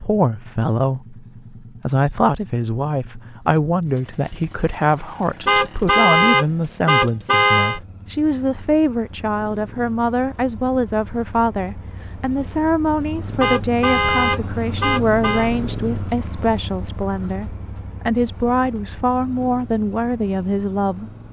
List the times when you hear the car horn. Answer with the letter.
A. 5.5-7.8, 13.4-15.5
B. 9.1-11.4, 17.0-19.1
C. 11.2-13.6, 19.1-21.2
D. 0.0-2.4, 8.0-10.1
A.